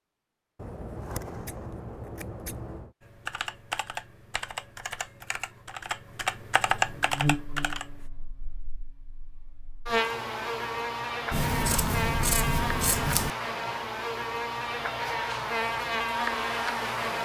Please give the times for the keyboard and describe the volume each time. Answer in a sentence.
The keyboard can be heard from 3.0 to 8.1 s, getting louder.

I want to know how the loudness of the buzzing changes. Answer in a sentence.
The volume of the buzzing goes up.